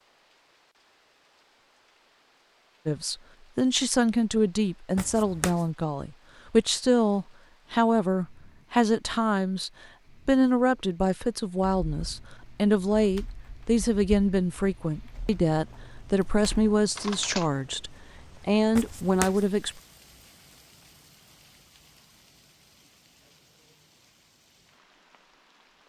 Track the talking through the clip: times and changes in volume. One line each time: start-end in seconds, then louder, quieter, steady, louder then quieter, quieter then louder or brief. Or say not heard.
2.9-19.8 steady.